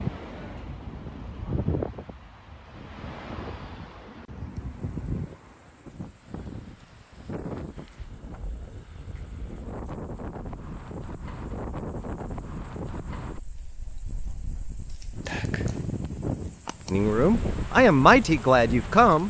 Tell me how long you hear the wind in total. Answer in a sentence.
You can hear the wind for 19 seconds altogether.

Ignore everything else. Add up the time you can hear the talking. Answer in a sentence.
You can hear the talking for 2 seconds altogether.